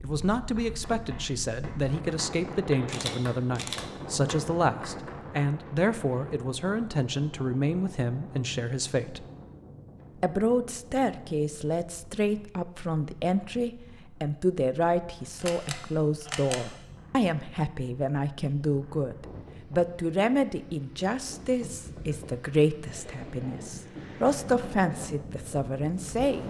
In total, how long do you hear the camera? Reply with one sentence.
You can hear the camera for 2 seconds altogether.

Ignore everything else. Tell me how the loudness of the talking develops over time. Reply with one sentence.
The volume of the talking stays about the same.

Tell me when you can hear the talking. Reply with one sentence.
You can hear the talking from 0.0 to 9.2 s and from 10.2 to 26.4 s.